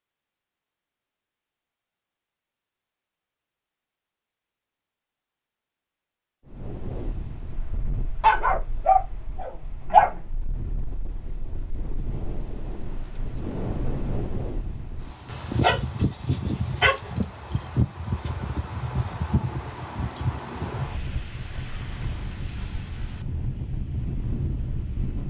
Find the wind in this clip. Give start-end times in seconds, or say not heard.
6.5-25.2.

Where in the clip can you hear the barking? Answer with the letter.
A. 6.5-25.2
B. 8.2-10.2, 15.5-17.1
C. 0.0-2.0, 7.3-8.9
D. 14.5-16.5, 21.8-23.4
B.